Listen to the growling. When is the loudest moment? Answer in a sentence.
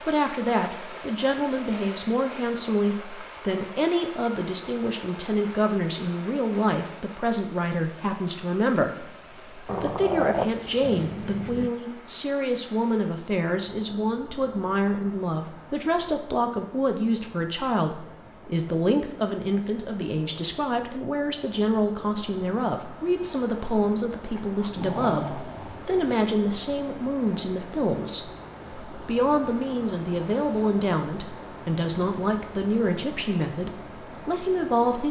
The volume of the growling peaks at 10 seconds.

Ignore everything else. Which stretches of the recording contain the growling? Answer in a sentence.
The growling can be heard from 9.7 to 11.7 s and from 24.4 to 25.9 s.